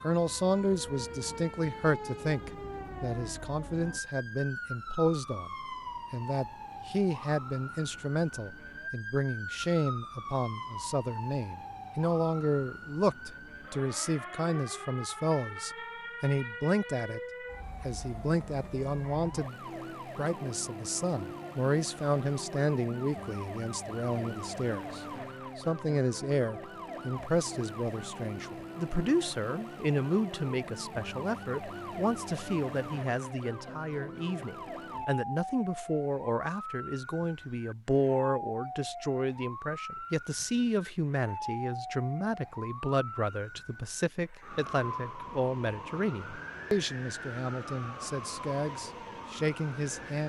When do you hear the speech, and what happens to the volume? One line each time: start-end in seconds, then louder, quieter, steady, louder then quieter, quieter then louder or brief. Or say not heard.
0.0-17.2 steady
17.8-19.6 brief
20.1-50.2 steady.